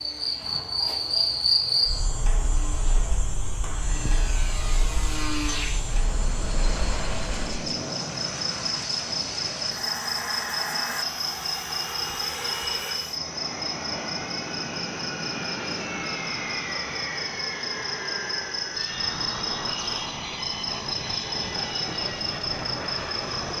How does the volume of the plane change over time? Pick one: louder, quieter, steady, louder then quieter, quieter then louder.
louder.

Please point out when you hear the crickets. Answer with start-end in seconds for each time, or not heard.
0.0-23.5.